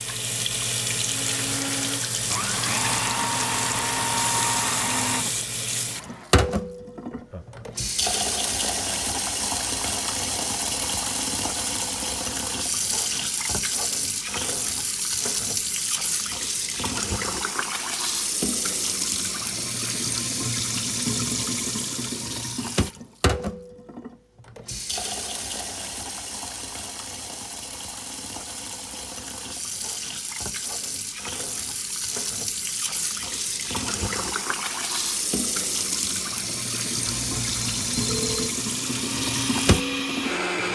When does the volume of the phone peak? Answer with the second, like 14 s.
38 s.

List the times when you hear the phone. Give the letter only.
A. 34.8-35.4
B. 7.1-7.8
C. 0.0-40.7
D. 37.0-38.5
D.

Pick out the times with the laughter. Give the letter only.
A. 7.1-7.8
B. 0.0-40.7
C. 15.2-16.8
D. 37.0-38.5
A.